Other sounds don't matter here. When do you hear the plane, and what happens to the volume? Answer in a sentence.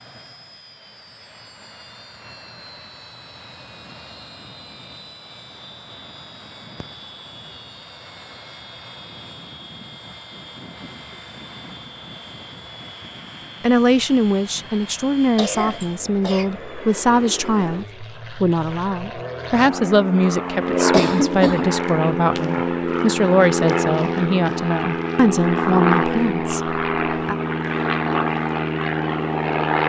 You can hear the plane from 0.0 to 29.8 s, getting louder.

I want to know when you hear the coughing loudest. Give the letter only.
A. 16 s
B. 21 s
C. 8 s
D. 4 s
B.